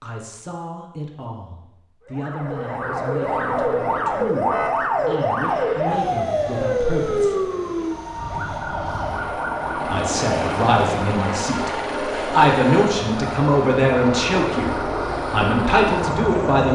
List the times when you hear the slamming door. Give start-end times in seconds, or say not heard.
not heard.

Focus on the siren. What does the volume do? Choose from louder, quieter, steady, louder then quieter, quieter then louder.
quieter.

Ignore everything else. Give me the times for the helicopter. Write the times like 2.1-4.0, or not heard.
5.4-16.7.